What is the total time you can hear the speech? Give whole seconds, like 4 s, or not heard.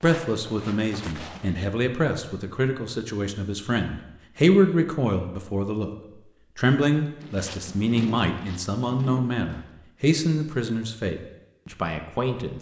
12 s.